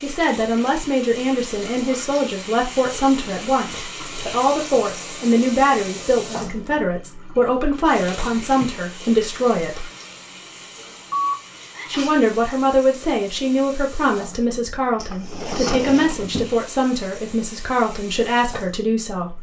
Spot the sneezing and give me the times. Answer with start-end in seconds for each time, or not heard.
11.1-12.2.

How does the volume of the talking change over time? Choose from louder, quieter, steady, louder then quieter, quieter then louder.
steady.